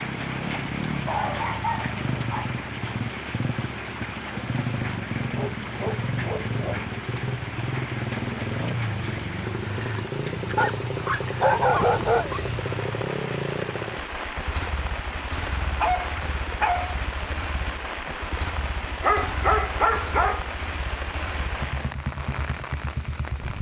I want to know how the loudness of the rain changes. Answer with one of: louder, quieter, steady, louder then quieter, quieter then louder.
steady.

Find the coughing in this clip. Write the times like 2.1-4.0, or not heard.
not heard.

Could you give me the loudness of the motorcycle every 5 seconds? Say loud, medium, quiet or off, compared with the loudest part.
loud, loud, loud, medium, medium.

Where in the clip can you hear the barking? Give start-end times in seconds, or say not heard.
1.1-2.5, 5.3-6.9, 10.6-12.4, 15.8-16.9, 19.0-20.5.